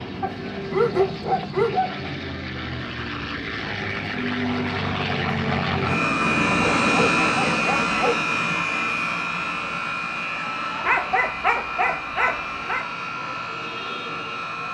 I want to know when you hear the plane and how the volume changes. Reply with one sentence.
You can hear the plane from 0.0 to 14.7 s, getting louder then quieter.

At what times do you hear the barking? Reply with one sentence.
You can hear the barking from 0.2 to 2.0 s, from 6.5 to 8.2 s and from 10.8 to 12.8 s.